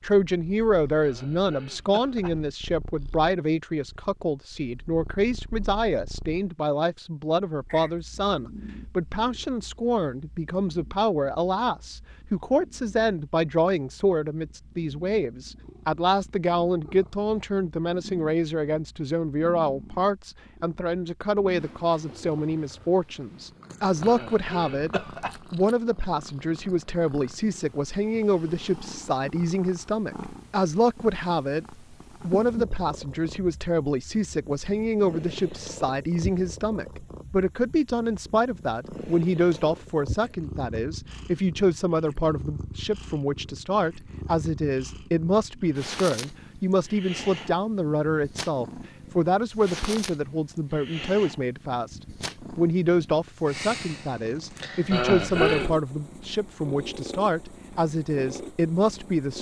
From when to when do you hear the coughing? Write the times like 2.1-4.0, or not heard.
1.0-2.4, 24.0-25.4, 54.9-55.8.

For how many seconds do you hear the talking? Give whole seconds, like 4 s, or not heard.
59 s.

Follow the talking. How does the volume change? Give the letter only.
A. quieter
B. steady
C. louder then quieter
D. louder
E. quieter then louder
B.